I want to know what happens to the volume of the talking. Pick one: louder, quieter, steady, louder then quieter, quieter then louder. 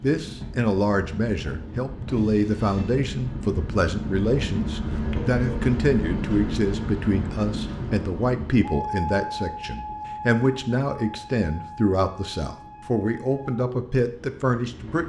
steady.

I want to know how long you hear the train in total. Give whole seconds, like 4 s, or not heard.
15 s.